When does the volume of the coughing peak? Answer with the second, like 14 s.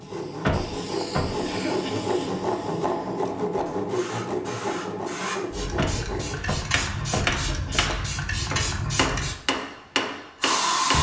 2 s.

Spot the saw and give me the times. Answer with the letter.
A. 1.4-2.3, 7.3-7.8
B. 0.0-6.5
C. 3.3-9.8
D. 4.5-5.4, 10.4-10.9
B.